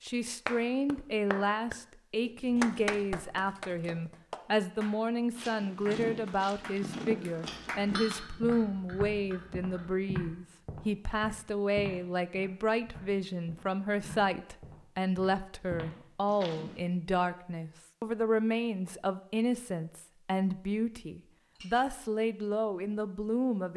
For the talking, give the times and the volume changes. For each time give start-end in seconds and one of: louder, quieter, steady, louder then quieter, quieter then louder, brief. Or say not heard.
0.0-23.7 steady.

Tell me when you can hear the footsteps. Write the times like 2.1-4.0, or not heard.
5.3-16.8.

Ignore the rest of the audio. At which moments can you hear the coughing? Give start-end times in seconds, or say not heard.
not heard.